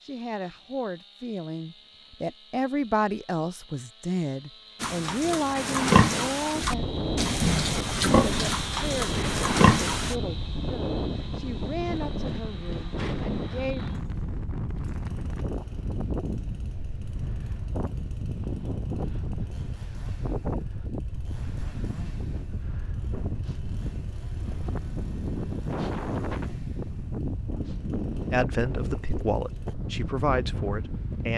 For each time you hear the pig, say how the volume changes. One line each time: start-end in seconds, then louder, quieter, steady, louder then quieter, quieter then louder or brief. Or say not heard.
4.8-10.2 quieter then louder.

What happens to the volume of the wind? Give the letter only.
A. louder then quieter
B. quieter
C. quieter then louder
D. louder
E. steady
E.